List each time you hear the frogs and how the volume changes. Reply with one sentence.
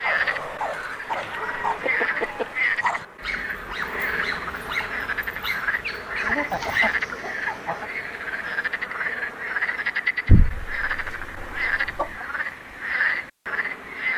The frogs can be heard from 0.0 to 14.1 s, at a steady volume.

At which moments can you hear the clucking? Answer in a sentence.
The clucking can be heard from 1.1 to 2.5 s, from 6.2 to 7.9 s and from 10.2 to 12.2 s.